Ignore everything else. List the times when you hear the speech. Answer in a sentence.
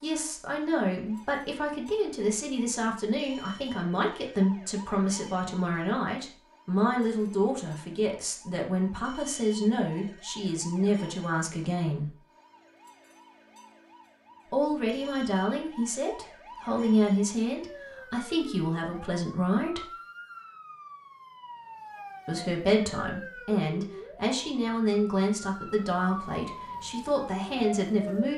The speech can be heard from 0.0 to 12.2 s, from 14.5 to 19.9 s and from 22.2 to 28.3 s.